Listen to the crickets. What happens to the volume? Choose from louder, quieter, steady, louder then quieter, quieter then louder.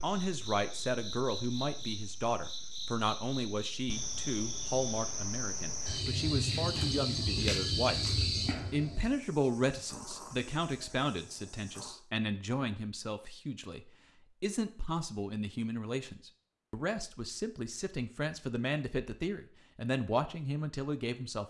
louder then quieter.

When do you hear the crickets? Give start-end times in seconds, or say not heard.
0.0-12.0.